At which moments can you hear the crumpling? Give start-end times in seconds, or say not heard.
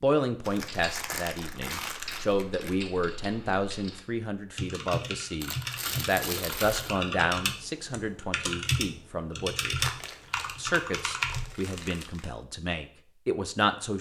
0.4-2.8, 5.4-7.0, 9.8-12.3.